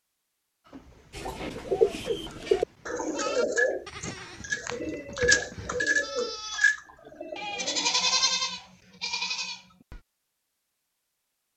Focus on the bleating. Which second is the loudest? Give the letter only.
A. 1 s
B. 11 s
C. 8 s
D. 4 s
C.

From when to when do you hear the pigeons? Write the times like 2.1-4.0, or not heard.
1.1-8.0.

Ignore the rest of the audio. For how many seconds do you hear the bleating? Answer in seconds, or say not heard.
9 s.